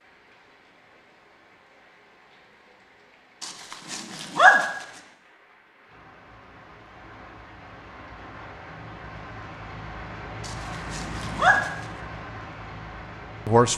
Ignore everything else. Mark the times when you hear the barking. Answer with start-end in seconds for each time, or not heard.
3.4-4.7, 10.4-11.7.